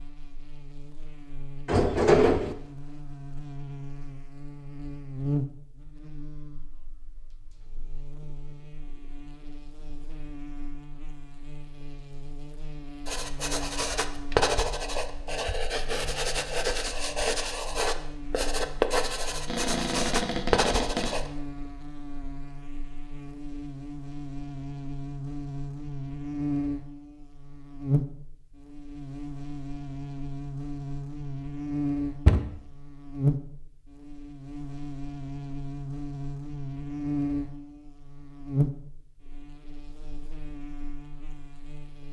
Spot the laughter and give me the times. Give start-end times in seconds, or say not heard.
not heard.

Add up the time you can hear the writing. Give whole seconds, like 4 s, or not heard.
8 s.